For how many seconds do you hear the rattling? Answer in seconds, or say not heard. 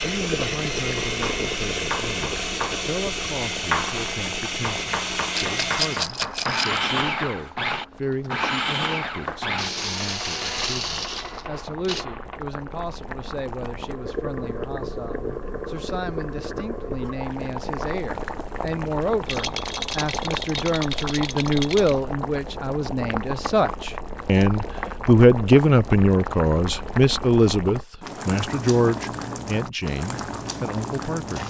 4 s.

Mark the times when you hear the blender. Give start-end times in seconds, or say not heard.
0.0-12.1.